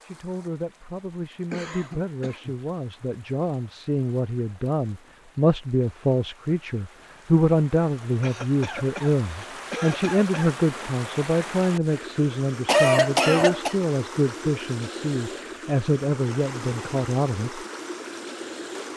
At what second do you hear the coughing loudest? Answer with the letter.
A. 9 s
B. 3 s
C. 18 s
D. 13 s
D.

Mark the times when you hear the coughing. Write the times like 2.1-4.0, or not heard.
1.5-2.5, 8.2-10.6, 12.7-13.8.